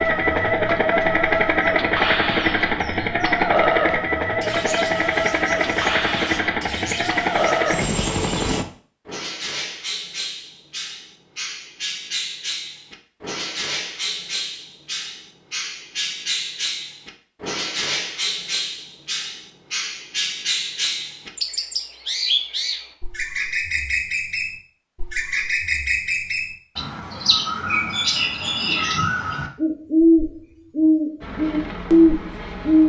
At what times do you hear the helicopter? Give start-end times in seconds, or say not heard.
0.0-8.7, 31.2-32.8.